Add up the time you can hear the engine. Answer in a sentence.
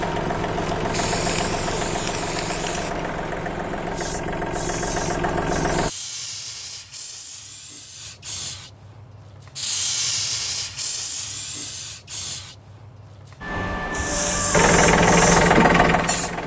You can hear the engine for 8 seconds altogether.